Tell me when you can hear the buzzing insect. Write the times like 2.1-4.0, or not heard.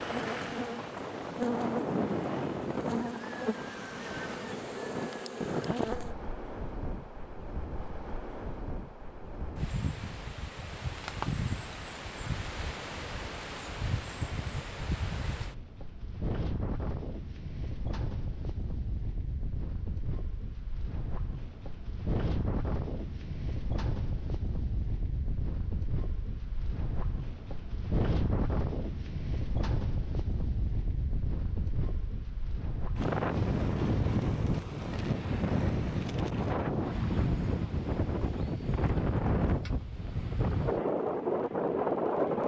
0.0-6.2.